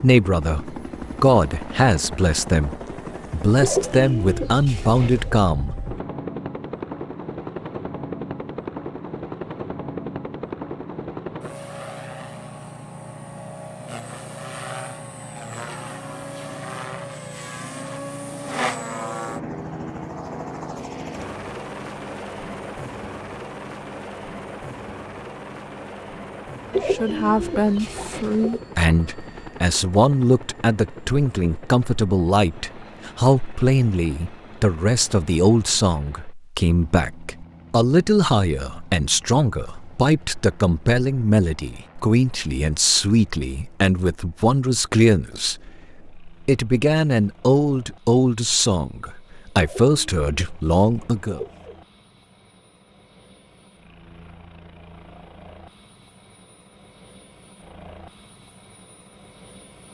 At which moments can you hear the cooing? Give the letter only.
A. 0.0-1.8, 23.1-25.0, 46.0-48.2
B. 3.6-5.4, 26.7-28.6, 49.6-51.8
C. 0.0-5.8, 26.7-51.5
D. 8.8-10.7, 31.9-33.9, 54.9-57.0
B.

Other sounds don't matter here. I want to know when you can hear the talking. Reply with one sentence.
The talking can be heard from 0.0 to 5.8 s and from 26.7 to 51.5 s.